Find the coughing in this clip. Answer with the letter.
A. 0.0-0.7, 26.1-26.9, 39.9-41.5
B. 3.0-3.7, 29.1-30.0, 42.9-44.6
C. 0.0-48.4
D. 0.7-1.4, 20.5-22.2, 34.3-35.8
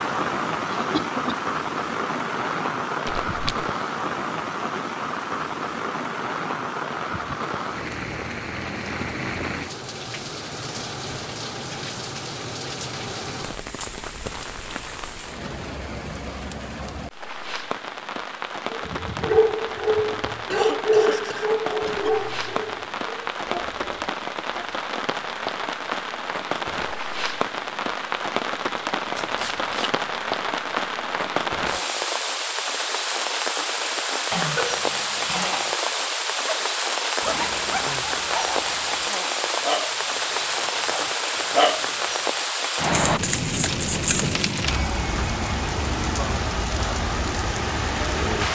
D.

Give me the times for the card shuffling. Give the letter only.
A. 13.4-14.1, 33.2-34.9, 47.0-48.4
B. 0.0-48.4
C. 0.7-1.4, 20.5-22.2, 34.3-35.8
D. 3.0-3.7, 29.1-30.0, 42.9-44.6
D.